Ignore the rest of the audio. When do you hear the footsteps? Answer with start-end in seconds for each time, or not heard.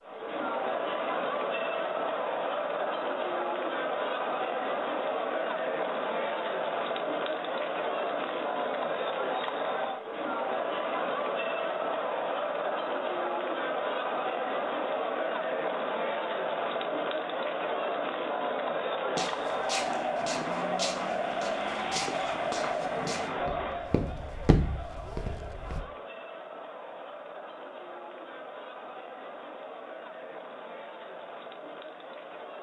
19.1-25.8.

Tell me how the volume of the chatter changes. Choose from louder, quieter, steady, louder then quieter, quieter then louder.
quieter.